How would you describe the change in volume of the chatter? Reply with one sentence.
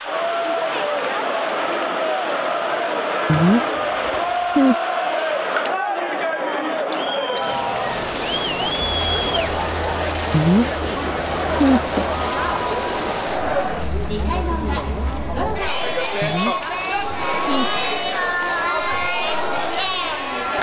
The volume of the chatter stays about the same.